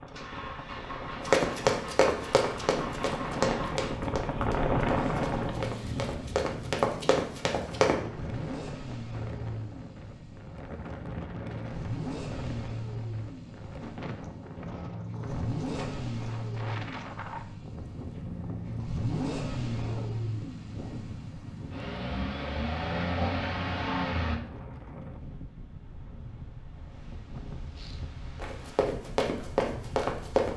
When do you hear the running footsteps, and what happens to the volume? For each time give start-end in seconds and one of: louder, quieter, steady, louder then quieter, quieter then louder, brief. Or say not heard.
1.2-8.0 quieter then louder
28.4-30.5 brief.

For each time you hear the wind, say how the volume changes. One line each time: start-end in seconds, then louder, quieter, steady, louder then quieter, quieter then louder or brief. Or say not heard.
0.0-30.5 quieter.